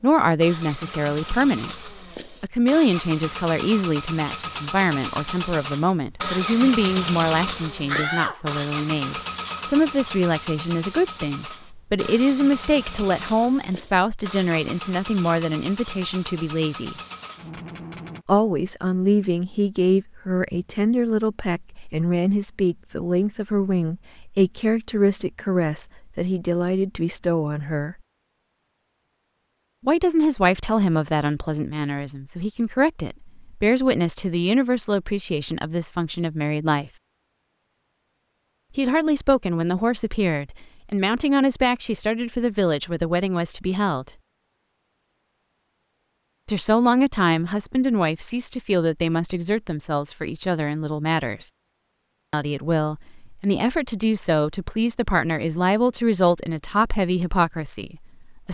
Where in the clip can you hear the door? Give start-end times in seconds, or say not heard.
7.8-8.4.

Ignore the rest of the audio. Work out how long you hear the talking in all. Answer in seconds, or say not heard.
50 s.